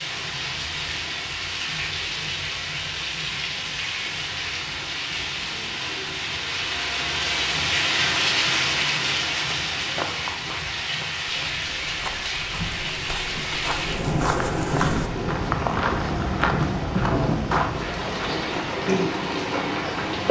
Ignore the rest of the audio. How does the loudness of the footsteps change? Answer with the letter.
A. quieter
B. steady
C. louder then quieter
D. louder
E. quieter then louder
D.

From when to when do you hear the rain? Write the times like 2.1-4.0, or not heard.
0.0-20.2.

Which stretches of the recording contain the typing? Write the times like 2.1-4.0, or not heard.
not heard.